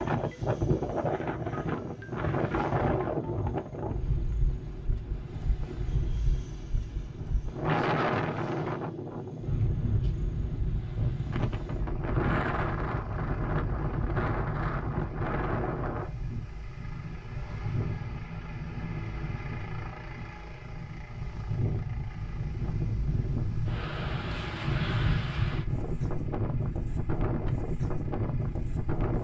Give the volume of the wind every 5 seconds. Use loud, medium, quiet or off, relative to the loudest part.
loud, loud, loud, medium, loud, loud.